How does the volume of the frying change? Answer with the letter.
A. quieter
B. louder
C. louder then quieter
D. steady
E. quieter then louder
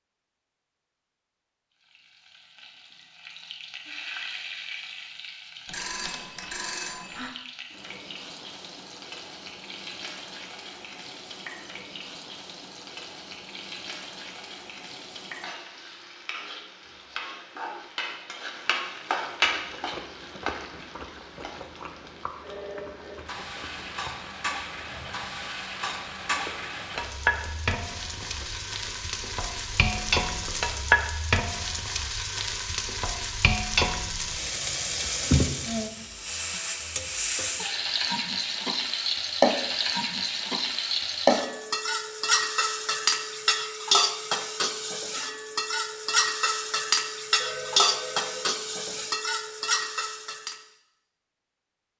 B.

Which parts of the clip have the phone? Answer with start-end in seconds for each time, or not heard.
5.7-7.3, 22.4-23.2, 47.4-49.0.